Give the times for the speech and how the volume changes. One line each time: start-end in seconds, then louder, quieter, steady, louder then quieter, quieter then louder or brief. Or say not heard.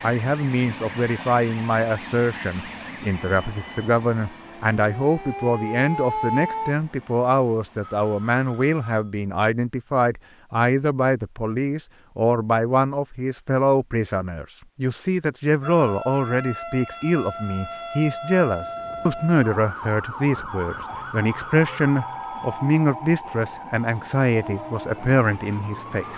0.0-26.1 steady.